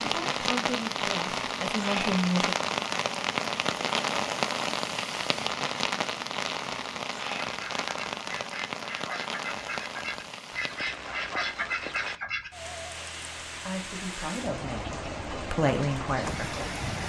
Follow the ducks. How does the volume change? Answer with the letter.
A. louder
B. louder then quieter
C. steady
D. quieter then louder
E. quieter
A.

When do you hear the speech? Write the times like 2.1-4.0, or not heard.
0.0-2.5, 13.6-16.8.